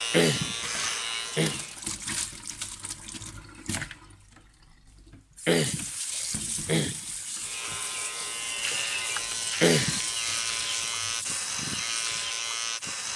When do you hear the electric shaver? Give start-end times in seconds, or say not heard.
0.0-1.8, 7.3-13.1.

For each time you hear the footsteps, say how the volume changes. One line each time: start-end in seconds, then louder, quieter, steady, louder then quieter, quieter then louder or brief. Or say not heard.
not heard.